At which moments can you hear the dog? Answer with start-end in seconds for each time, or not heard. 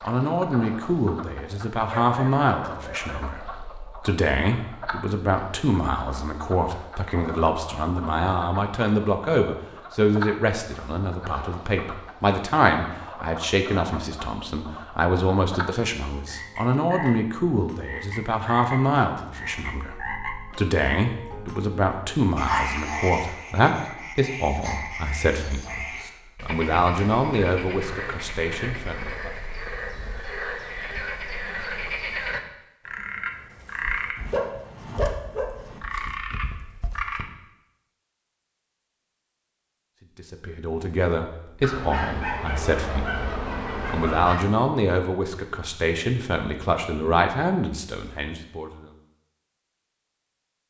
1.9-3.3, 22.4-22.8, 34.1-35.8, 41.6-44.5.